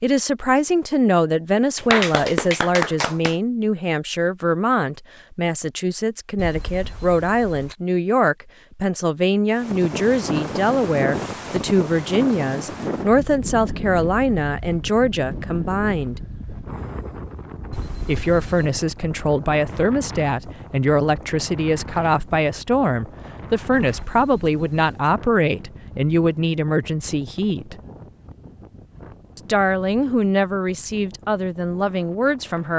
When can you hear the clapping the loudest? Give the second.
2 s.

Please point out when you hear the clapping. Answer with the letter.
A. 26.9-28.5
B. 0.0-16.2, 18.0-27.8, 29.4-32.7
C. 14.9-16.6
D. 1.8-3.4
D.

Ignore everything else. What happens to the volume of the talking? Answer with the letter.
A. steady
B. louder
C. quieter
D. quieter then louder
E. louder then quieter
A.